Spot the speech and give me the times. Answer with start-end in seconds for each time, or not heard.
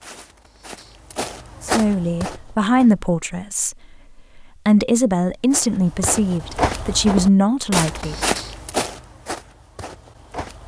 1.6-3.8, 4.3-8.2.